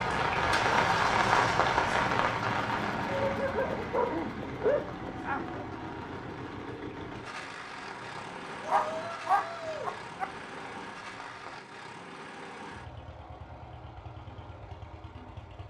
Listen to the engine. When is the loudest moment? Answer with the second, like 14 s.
1 s.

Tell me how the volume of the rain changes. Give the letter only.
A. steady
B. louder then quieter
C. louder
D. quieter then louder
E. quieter
E.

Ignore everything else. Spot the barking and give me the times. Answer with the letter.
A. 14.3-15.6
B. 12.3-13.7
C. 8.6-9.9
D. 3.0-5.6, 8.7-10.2
D.